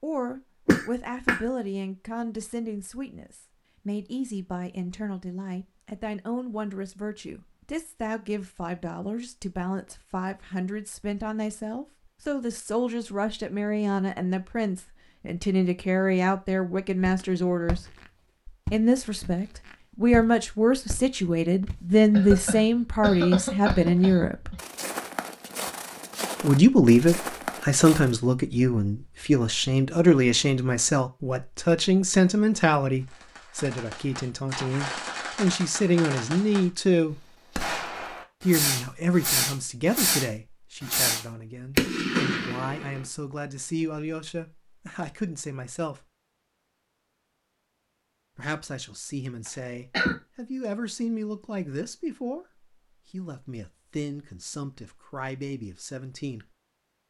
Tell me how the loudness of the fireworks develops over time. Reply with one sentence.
The loudness of the fireworks goes up.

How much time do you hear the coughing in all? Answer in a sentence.
The coughing can be heard for 4 seconds in total.